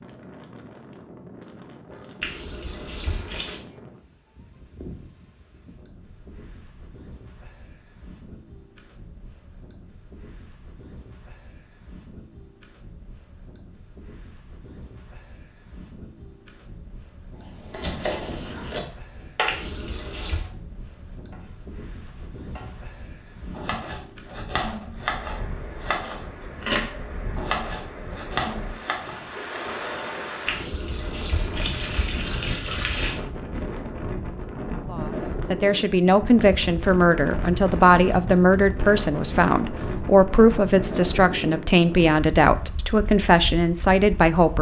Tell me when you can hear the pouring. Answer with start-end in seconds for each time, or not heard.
2.2-3.6, 19.4-20.4, 30.4-33.2.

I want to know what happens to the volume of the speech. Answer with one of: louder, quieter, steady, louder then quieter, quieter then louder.
steady.